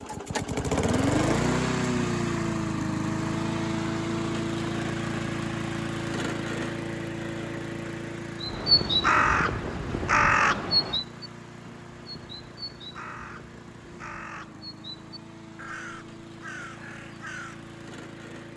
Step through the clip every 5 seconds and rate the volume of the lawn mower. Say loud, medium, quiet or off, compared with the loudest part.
loud, medium, quiet, quiet.